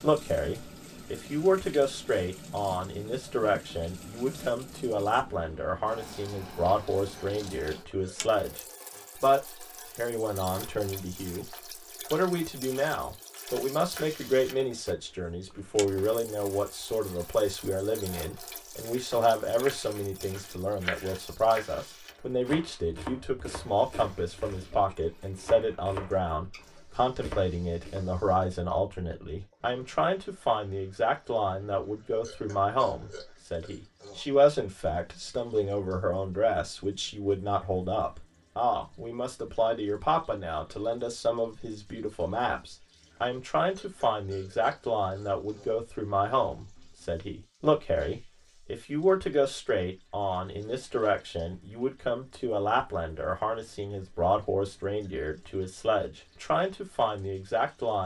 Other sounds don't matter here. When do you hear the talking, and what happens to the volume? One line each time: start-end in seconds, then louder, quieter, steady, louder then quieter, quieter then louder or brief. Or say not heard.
0.0-58.0 steady.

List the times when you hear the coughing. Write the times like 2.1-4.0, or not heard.
not heard.